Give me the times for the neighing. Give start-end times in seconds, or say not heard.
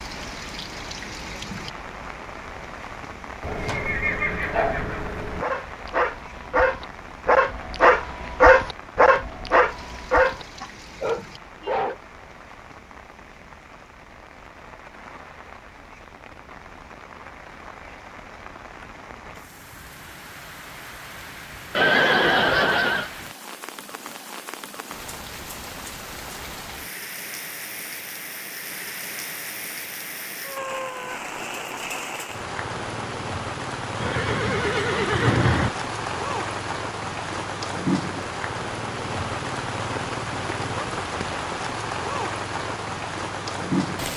3.4-5.5, 21.8-23.1, 34.0-35.7.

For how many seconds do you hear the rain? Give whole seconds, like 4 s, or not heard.
44 s.